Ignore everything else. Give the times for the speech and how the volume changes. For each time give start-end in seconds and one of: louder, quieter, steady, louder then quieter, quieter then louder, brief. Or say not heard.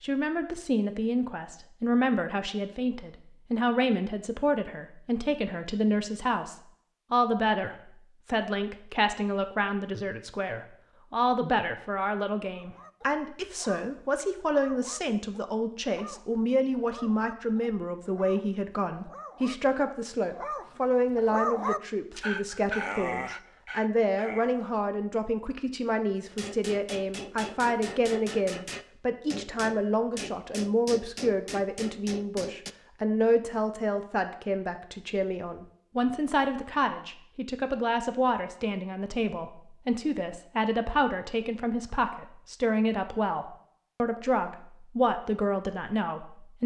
0.0-46.6 steady.